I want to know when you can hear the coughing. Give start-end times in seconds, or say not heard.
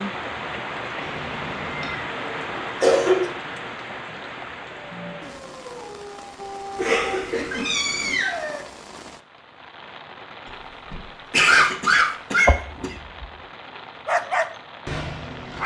2.2-3.2, 6.8-8.2, 10.9-12.9.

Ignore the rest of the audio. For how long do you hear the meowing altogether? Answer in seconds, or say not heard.
3 s.